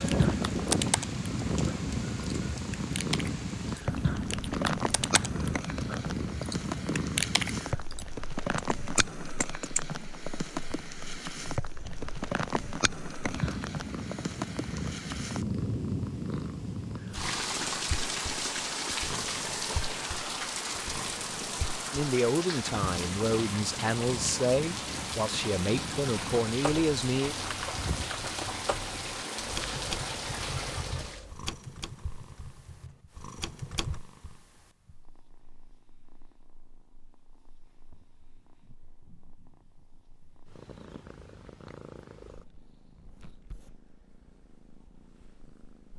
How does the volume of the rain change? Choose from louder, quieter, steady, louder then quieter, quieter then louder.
steady.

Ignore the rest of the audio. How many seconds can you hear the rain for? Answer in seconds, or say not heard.
31 s.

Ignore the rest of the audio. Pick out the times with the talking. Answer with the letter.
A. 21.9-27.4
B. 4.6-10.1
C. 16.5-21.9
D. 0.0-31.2
A.